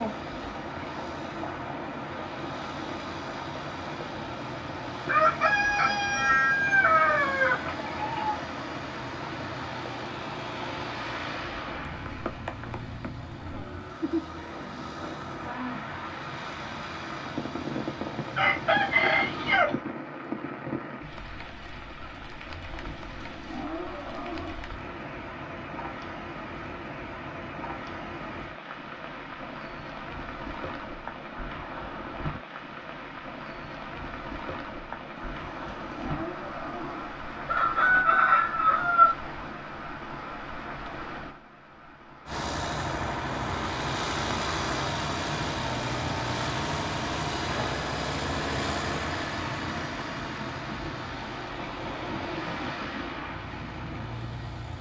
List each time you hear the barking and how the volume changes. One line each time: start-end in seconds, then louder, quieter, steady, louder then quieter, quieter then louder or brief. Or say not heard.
not heard.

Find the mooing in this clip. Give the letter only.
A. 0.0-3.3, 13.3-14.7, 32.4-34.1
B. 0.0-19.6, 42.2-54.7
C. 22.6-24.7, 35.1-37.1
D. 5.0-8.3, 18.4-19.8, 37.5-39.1
C.